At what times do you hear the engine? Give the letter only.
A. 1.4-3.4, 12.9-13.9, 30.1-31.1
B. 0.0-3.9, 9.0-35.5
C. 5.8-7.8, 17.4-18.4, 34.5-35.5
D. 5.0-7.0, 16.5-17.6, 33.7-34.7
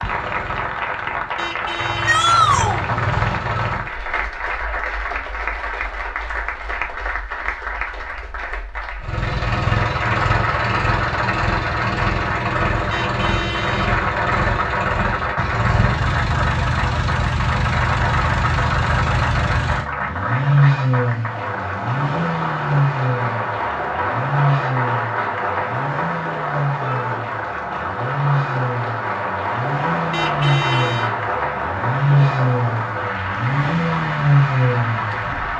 B.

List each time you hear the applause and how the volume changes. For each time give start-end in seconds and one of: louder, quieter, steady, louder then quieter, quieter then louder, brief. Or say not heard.
0.0-35.5 steady.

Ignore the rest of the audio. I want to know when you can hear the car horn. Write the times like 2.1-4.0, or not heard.
1.4-3.4, 12.9-13.9, 30.1-31.1.